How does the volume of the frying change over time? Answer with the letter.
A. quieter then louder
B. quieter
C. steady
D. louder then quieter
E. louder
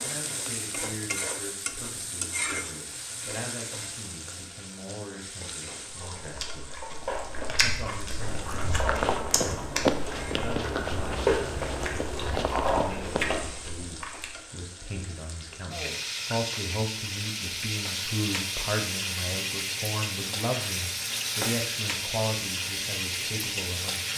A.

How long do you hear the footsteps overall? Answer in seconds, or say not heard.
5 s.